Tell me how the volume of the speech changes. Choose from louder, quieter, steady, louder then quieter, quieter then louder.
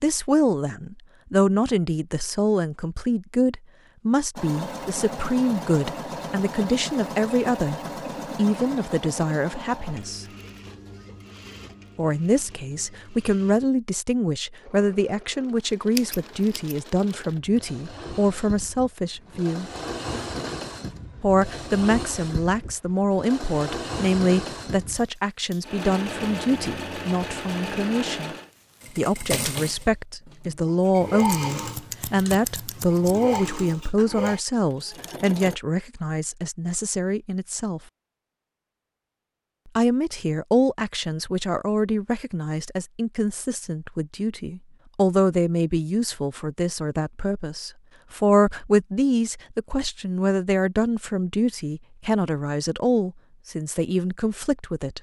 steady.